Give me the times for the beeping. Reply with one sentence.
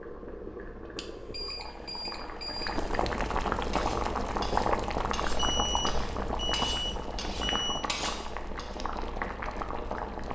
You can hear the beeping from 0.9 to 3.0 s and from 5.3 to 7.8 s.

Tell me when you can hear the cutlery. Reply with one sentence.
You can hear the cutlery from 3.7 to 8.8 s.